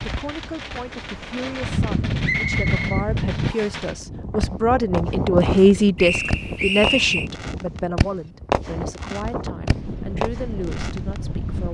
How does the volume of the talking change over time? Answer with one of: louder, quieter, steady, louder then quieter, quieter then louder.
louder then quieter.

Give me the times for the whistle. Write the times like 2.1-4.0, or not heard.
2.2-3.8, 6.0-7.3.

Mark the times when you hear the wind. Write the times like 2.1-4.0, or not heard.
0.0-11.6.